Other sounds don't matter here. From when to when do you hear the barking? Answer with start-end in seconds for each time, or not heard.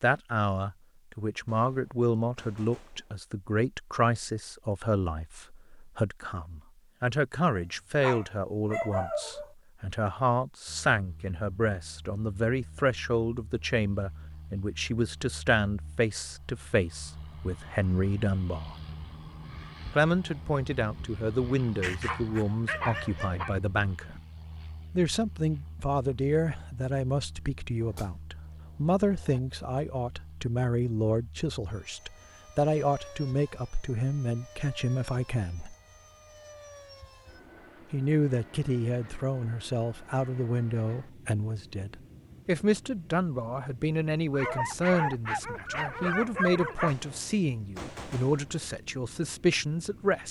7.5-9.5, 21.8-23.6, 44.3-47.0.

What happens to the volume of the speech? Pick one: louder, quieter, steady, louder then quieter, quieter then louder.
steady.